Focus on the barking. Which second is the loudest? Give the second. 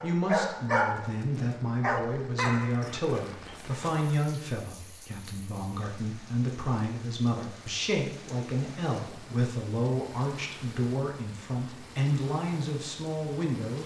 1 s.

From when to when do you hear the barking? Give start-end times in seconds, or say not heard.
0.0-4.2.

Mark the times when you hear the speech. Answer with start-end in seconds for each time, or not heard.
0.0-13.8.